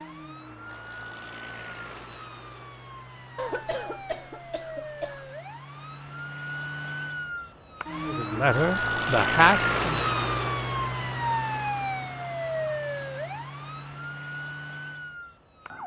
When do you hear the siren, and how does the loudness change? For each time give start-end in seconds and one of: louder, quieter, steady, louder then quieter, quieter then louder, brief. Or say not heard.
0.0-15.8 louder then quieter.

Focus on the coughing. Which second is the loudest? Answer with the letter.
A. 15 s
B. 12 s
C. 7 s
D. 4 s
D.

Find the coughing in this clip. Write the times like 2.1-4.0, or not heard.
3.4-5.3.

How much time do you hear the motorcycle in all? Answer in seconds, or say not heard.
not heard.